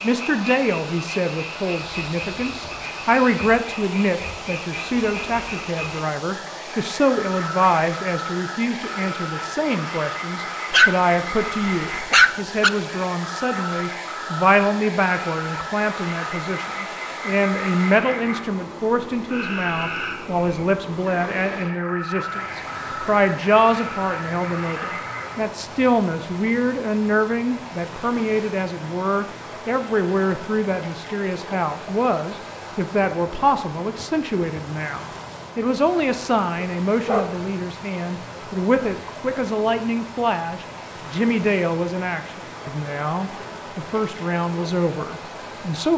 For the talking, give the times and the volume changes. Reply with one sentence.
The talking can be heard from 0.0 to 45.9 s, at a steady volume.